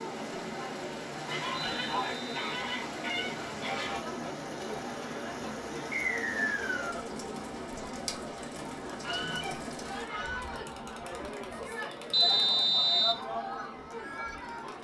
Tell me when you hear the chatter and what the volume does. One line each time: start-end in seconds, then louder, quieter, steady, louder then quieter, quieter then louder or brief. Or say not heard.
0.0-14.7 steady.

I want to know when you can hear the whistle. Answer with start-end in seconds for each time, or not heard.
1.5-2.5, 5.9-7.0, 12.1-13.2.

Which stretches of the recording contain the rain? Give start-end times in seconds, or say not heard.
0.0-10.1.